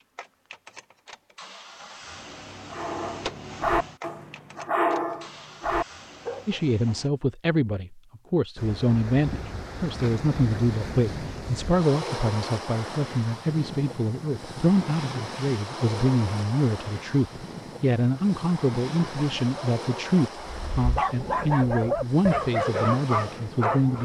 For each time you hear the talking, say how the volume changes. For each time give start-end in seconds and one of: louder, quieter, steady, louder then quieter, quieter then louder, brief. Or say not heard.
6.5-24.0 steady.